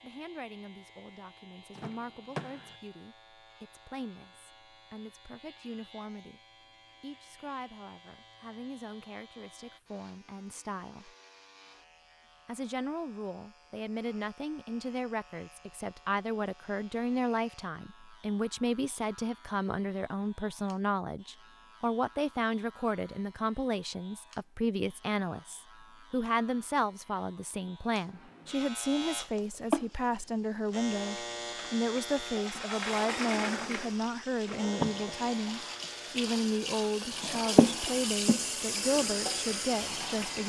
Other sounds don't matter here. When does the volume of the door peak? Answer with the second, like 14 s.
33 s.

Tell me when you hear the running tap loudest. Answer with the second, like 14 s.
38 s.